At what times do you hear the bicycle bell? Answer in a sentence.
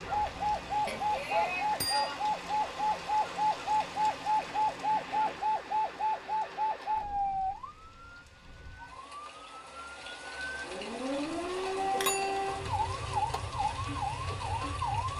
You can hear the bicycle bell from 0.8 to 2.2 s and from 11.9 to 12.6 s.